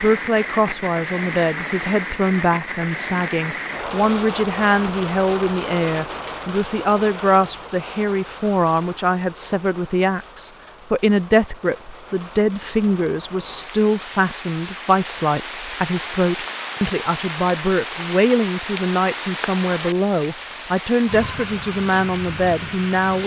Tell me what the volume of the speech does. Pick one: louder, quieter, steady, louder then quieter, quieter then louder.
steady.